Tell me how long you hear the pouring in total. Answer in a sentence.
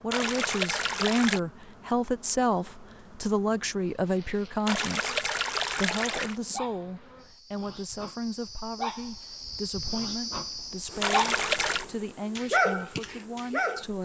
The pouring can be heard for 4 seconds in total.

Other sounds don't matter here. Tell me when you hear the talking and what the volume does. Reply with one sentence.
The talking can be heard from 0.0 to 13.9 s, getting quieter.